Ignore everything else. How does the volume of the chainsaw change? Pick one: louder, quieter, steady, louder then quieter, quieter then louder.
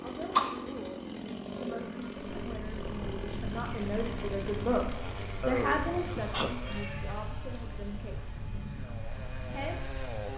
quieter.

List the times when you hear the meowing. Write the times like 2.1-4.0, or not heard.
6.6-8.0.